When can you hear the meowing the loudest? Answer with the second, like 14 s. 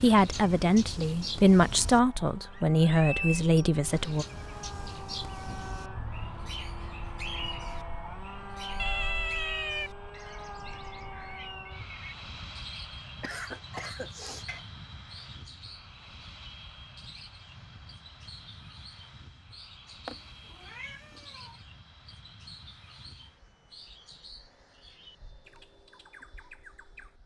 9 s.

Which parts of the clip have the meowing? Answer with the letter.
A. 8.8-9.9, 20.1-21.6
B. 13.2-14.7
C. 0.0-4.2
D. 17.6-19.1
A.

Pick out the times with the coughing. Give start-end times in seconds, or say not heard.
13.2-14.7.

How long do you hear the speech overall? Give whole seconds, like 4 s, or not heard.
4 s.